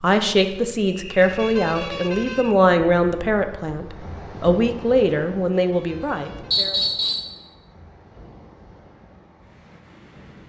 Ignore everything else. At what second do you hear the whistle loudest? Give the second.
7 s.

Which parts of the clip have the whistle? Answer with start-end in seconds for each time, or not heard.
0.8-2.5, 6.5-7.3.